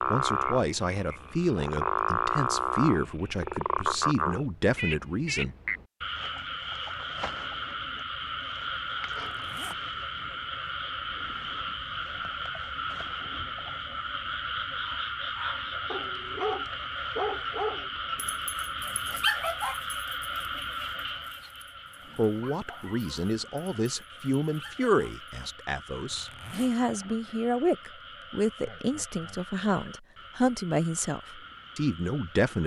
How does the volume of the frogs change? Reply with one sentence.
The loudness of the frogs goes down.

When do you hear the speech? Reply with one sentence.
The speech can be heard from 0.1 to 5.5 s and from 22.1 to 32.6 s.